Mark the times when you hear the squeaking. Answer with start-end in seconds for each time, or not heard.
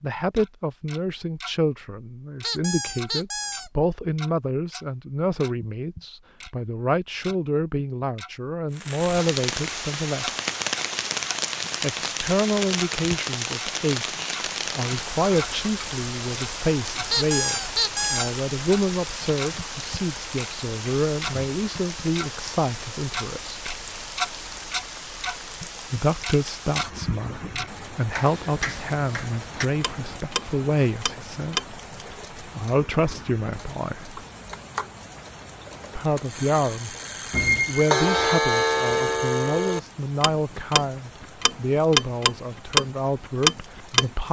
2.4-3.7, 17.1-18.3, 37.3-38.4.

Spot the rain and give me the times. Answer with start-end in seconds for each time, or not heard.
8.7-44.2.